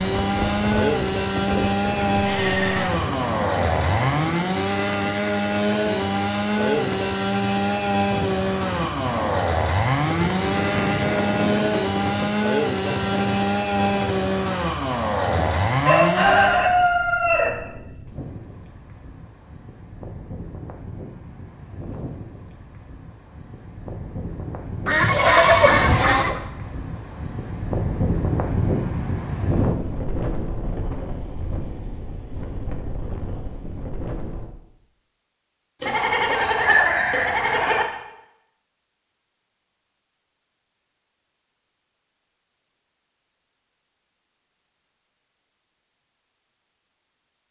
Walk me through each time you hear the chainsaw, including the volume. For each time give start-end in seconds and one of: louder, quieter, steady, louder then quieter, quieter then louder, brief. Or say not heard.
0.0-16.8 steady.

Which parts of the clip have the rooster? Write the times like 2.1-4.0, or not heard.
15.8-17.5, 35.8-37.8.